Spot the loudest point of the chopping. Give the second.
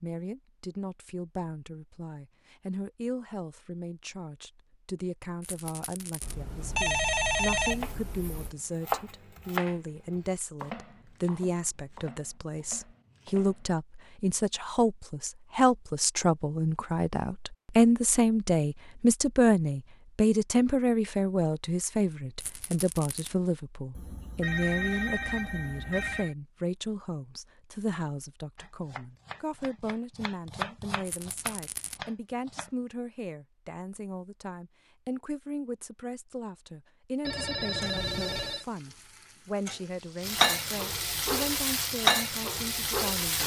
9 s.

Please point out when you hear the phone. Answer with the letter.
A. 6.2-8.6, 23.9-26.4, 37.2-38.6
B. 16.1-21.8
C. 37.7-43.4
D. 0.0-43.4
A.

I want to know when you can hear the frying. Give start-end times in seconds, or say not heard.
37.7-43.4.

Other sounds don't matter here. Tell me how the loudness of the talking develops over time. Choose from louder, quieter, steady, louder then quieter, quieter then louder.
louder then quieter.